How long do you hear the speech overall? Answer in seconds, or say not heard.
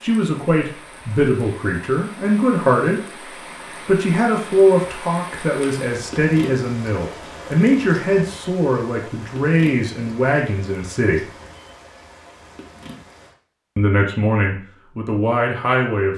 13 s.